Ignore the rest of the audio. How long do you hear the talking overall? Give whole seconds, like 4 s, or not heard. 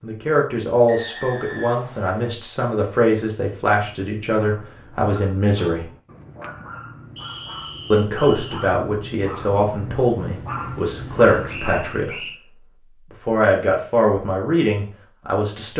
13 s.